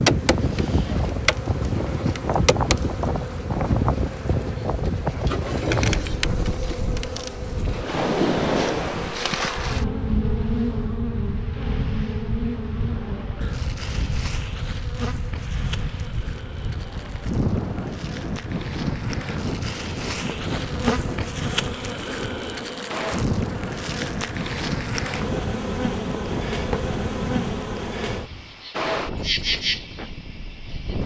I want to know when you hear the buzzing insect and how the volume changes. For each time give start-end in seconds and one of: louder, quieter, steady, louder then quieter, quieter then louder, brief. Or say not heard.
0.0-31.0 quieter then louder.